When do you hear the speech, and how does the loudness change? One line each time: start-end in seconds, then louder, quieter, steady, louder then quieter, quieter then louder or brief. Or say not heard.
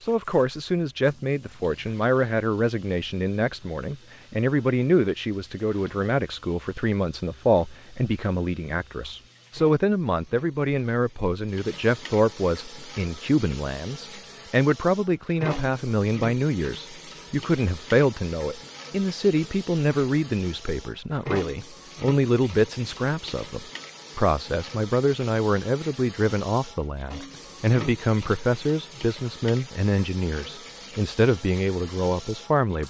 0.0-32.8 steady.